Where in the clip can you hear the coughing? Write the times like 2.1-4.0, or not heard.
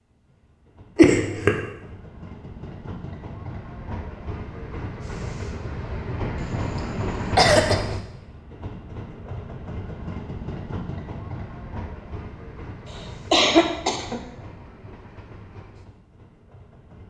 0.9-1.6, 6.3-7.8, 13.3-14.2.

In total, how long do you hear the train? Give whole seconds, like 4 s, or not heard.
17 s.